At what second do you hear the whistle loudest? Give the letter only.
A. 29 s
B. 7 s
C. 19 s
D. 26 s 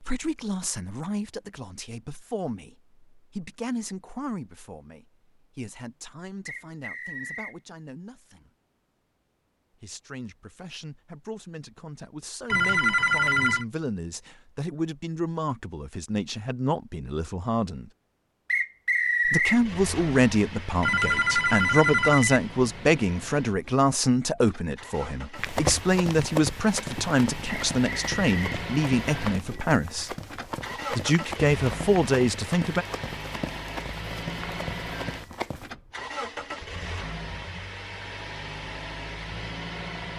C.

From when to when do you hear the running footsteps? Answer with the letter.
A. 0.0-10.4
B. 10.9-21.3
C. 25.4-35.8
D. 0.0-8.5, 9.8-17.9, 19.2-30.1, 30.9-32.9
C.